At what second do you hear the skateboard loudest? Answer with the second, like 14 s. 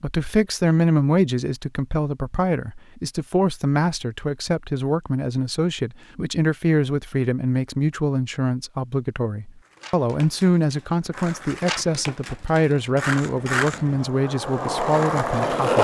15 s.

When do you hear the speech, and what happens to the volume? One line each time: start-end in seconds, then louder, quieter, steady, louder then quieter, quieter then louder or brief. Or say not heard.
0.0-15.7 steady.